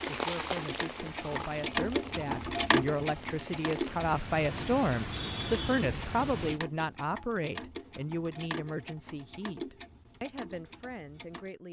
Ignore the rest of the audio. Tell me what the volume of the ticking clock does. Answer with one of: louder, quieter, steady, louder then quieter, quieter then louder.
quieter.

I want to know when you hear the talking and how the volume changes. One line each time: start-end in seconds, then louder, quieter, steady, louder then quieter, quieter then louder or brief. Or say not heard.
0.0-11.6 louder then quieter.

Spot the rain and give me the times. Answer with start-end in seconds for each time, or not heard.
0.0-6.6.